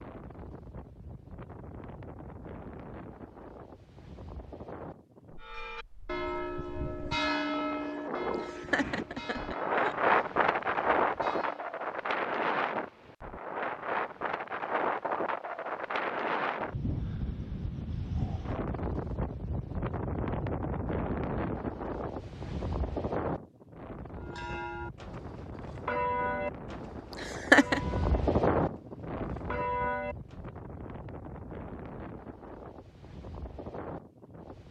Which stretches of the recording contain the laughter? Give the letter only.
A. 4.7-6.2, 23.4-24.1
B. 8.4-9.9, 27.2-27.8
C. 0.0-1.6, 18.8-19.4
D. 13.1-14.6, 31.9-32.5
B.